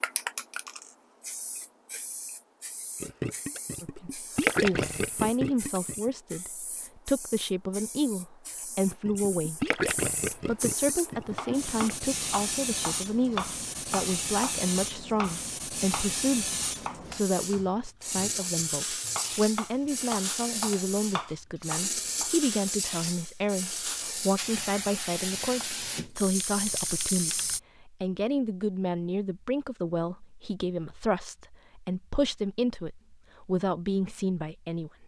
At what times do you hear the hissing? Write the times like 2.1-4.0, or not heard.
0.0-27.6.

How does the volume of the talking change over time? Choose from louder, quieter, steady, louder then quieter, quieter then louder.
steady.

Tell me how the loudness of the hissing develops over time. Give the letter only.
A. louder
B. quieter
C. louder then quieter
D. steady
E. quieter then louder
A.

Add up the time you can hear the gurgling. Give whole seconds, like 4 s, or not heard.
6 s.